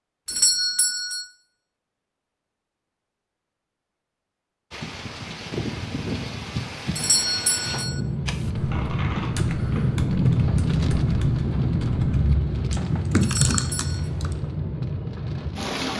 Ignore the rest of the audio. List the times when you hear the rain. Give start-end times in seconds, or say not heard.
4.7-15.9.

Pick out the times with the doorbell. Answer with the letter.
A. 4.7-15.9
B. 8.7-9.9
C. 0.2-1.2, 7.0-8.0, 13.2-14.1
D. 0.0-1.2
C.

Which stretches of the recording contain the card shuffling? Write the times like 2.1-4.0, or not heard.
8.7-9.9.